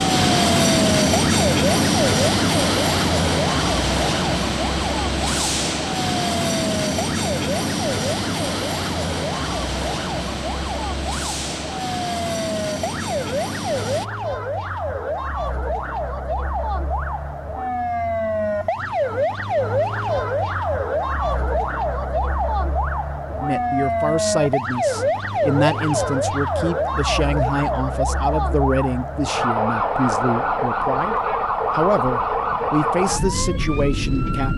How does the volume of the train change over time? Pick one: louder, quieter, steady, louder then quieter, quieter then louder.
quieter.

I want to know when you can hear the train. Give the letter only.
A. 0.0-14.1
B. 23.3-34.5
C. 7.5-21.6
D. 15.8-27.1
A.